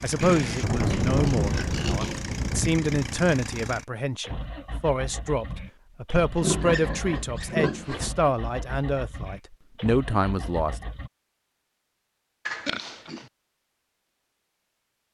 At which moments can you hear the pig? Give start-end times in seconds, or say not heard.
0.2-2.4, 6.4-8.1, 12.4-13.2.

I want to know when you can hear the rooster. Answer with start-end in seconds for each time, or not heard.
not heard.